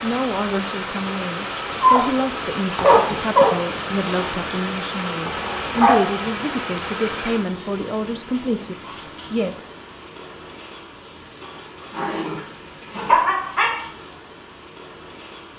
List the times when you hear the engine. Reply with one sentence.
You can hear the engine from 0.0 to 7.5 s.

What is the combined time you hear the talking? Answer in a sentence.
The talking can be heard for 10 seconds in total.